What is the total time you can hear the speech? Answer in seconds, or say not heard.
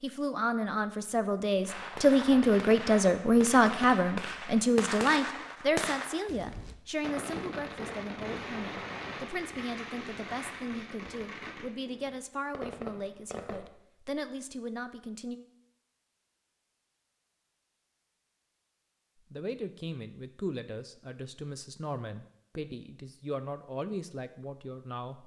21 s.